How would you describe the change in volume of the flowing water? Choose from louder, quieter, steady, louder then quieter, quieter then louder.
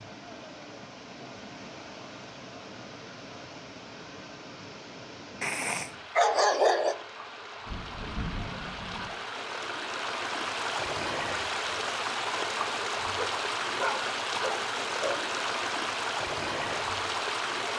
louder.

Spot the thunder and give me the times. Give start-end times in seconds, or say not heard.
7.7-9.1.